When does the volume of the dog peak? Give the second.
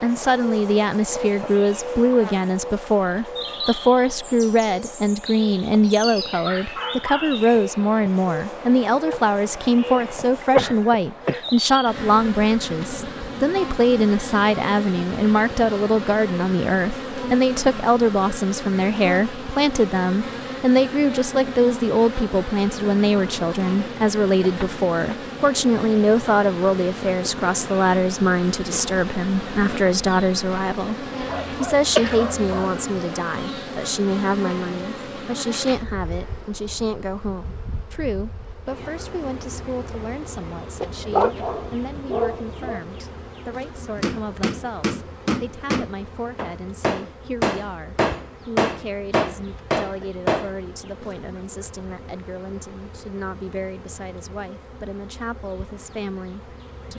41 s.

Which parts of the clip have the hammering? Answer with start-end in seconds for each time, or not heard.
44.0-50.5.